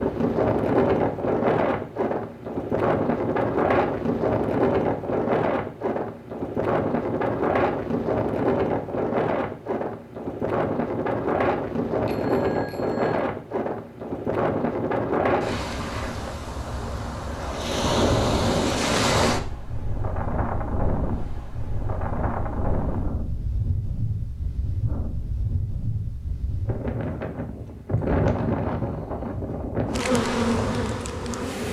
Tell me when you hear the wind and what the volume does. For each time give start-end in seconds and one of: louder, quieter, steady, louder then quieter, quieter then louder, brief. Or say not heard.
0.0-31.6 quieter.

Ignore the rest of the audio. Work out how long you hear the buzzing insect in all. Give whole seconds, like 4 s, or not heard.
2 s.